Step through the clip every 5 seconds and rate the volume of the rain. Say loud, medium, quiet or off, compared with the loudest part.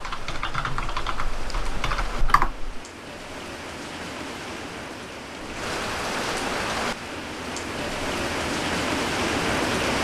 medium, loud.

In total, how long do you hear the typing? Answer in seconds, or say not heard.
3 s.